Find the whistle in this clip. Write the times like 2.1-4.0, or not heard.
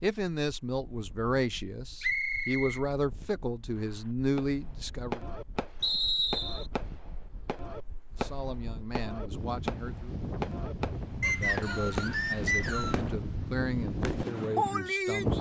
2.0-2.8, 5.8-6.7, 11.2-13.0.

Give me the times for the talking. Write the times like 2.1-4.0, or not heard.
0.0-5.2, 8.1-10.2, 11.3-15.3.